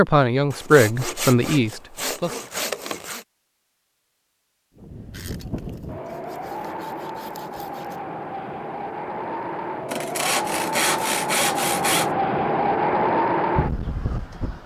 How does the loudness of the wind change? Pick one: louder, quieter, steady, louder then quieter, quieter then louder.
louder.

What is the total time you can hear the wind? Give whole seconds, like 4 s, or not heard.
10 s.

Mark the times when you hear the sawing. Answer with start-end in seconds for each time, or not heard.
0.5-3.2, 5.1-8.0, 9.8-12.1.